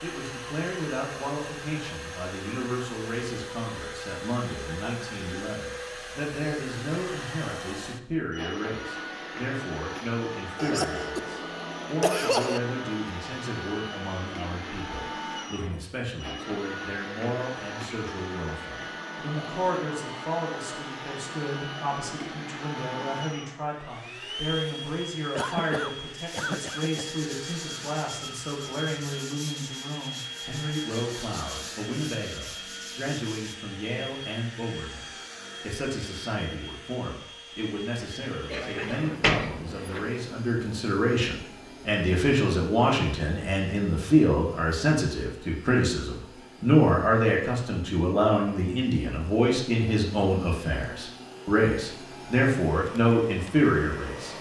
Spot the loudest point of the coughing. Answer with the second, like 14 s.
12 s.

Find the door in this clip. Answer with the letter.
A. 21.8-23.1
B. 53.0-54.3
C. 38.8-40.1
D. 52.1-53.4
C.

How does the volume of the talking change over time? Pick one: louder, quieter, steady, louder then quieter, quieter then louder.
louder.